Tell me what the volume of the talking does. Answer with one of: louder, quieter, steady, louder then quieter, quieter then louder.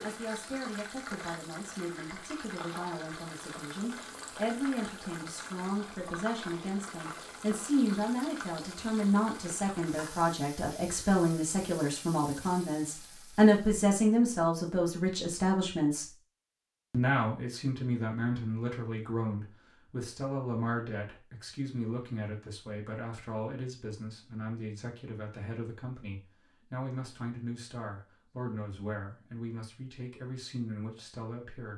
louder then quieter.